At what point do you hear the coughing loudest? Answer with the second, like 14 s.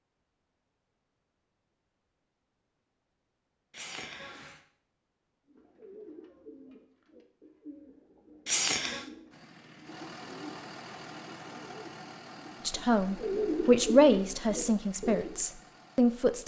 9 s.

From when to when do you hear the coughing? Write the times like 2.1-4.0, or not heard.
3.7-4.6, 8.4-9.1.